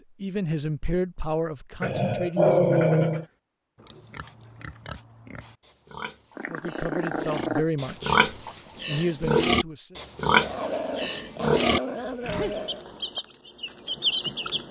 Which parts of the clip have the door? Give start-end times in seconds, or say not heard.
not heard.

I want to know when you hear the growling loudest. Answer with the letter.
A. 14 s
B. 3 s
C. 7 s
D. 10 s
B.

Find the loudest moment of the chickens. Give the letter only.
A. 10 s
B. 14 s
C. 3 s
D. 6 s
B.